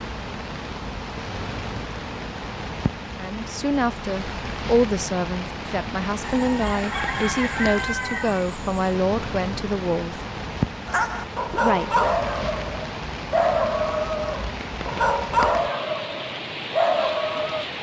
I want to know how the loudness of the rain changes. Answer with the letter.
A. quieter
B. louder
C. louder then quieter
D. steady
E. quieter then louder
D.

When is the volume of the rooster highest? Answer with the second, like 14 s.
8 s.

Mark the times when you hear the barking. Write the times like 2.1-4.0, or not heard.
10.8-17.6.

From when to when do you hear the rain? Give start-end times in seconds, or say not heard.
0.0-17.7.